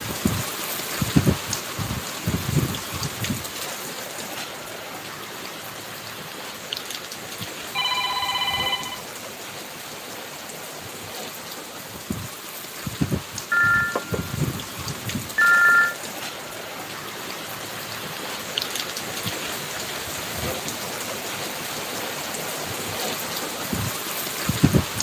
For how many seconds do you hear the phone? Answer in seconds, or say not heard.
4 s.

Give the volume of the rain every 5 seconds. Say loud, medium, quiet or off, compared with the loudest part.
loud, medium, medium, medium, loud.